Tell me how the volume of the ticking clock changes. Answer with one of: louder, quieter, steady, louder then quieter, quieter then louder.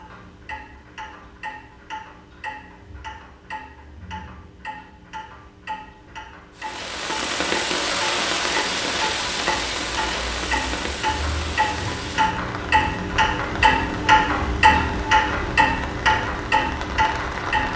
louder.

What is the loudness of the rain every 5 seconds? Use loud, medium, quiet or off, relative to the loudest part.
off, loud, medium, medium.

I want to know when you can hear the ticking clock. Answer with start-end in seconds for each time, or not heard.
0.0-17.7.